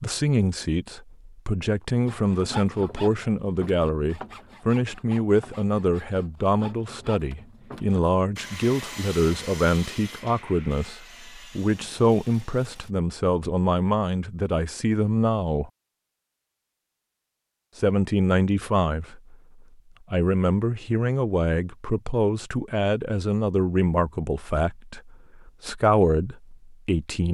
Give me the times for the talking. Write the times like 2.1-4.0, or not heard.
0.0-15.7, 17.8-27.3.